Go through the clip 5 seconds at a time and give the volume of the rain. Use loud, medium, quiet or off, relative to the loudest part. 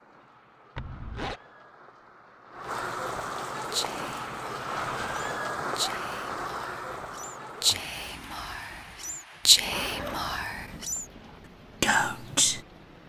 loud, loud, quiet.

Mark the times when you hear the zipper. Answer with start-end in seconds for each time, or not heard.
0.8-1.4, 5.5-6.0, 9.6-11.4.